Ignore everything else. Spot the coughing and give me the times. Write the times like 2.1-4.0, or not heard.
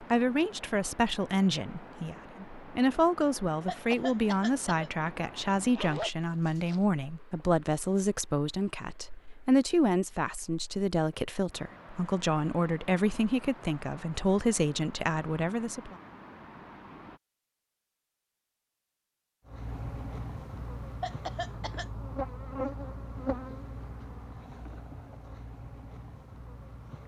3.6-4.9, 21.0-21.9.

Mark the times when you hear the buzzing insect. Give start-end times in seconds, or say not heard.
19.4-27.0.